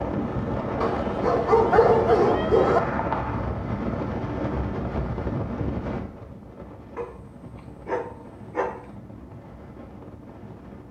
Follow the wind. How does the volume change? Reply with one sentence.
The volume of the wind goes down.